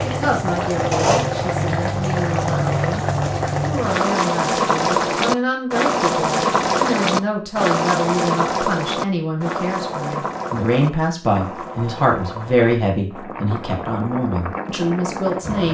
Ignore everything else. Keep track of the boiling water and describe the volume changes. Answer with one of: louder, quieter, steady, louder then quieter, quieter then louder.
quieter.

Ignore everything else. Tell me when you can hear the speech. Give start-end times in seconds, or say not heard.
0.0-15.6.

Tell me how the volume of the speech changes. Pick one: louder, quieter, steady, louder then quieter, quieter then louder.
louder.